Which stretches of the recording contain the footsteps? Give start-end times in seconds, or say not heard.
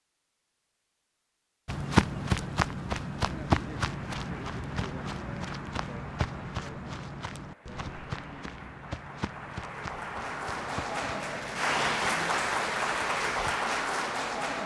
1.6-13.7.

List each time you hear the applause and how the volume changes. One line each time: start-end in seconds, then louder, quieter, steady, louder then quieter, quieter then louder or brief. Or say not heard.
3.9-14.6 louder.